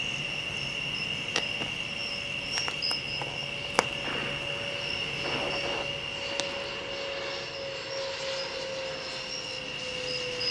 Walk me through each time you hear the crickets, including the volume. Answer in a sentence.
The crickets can be heard from 0.0 to 10.4 s, getting quieter.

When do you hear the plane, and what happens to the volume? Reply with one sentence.
You can hear the plane from 0.0 to 10.4 s, getting louder.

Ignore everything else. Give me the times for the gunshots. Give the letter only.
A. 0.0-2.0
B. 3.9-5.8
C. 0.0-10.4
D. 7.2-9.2
B.